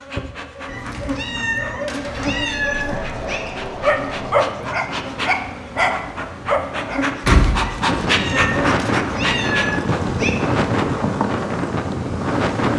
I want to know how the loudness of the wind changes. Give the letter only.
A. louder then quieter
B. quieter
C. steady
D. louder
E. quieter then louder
D.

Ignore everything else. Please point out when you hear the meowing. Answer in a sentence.
The meowing can be heard from 0.7 to 3.5 s and from 7.6 to 10.3 s.